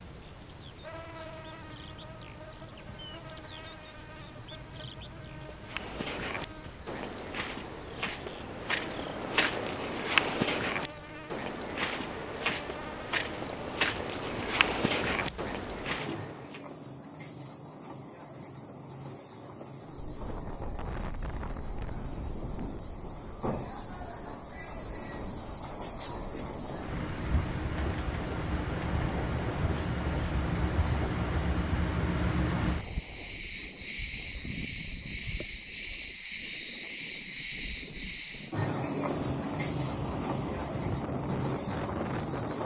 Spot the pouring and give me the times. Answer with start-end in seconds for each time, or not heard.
not heard.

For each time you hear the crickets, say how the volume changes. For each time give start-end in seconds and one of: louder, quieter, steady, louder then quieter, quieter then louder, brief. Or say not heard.
0.0-42.6 louder.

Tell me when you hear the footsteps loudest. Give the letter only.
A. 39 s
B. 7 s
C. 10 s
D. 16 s
C.